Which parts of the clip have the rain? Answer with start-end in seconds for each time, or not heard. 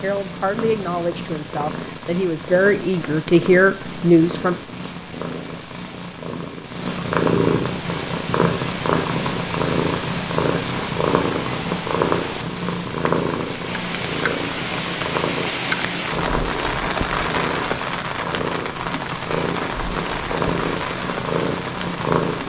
7.7-22.4.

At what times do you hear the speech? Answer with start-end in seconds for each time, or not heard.
0.0-4.5.